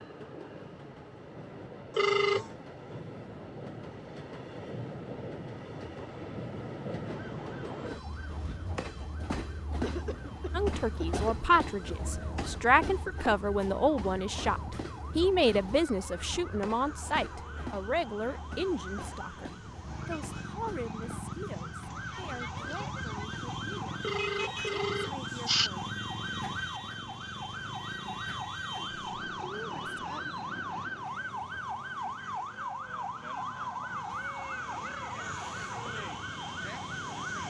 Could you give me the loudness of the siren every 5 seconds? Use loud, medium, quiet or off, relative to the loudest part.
off, quiet, quiet, medium, loud, loud, loud, loud.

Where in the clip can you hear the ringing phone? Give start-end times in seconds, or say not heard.
1.9-2.5, 24.0-25.7.